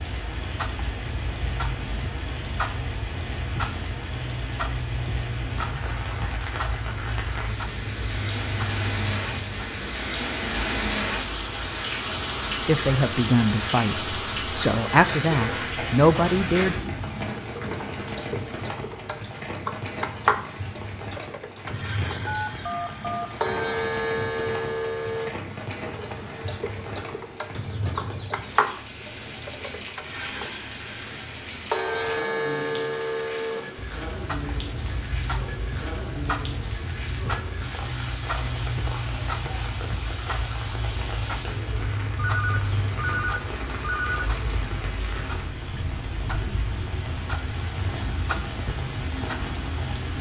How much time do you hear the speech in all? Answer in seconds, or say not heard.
4 s.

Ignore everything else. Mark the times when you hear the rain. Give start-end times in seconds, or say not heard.
0.0-50.1.